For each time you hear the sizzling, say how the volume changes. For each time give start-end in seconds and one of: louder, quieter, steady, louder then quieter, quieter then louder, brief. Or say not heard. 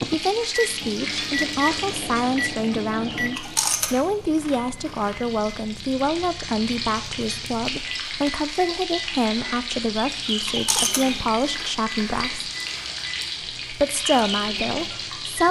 0.0-15.4 quieter then louder.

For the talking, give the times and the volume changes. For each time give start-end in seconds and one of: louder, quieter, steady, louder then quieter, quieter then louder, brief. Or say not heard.
0.1-12.5 steady
13.7-15.4 brief.